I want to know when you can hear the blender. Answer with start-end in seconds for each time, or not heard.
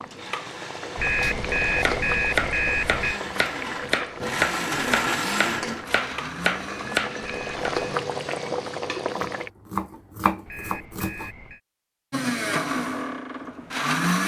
0.1-8.1, 12.1-14.2.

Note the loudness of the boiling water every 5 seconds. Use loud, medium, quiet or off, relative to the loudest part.
loud, loud, off.